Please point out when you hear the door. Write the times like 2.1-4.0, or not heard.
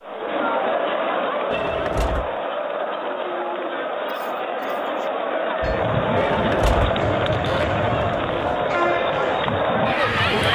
1.5-2.4, 6.2-8.6.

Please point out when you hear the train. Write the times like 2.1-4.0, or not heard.
5.6-10.5.